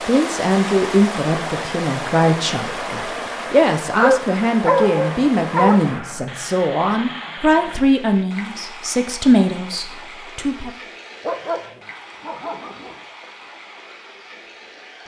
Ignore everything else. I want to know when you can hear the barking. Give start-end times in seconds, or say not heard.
4.0-5.8, 11.2-12.9.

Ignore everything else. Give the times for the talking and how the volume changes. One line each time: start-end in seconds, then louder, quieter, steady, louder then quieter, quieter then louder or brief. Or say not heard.
0.1-10.8 steady.